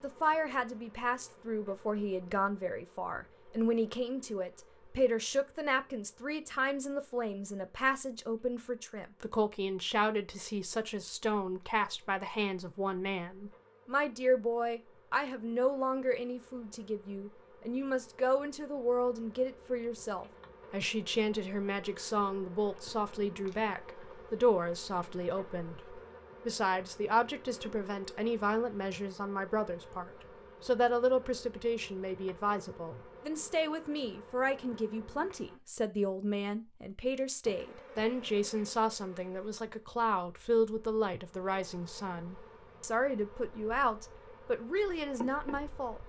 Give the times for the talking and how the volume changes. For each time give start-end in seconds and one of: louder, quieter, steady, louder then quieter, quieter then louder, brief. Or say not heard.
0.0-46.0 steady.